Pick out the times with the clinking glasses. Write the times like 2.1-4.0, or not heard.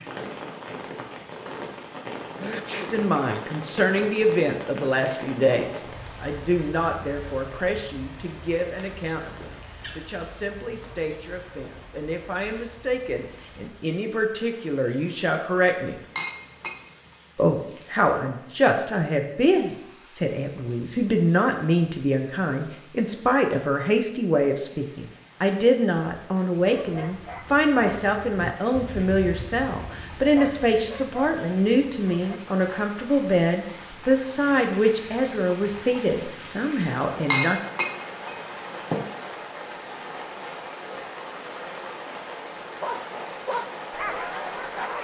16.1-16.9, 37.3-39.0.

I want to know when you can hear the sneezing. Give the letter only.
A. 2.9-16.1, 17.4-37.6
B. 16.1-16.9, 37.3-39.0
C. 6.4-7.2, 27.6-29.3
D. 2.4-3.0
D.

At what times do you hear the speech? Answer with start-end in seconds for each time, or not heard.
2.9-16.1, 17.4-37.6.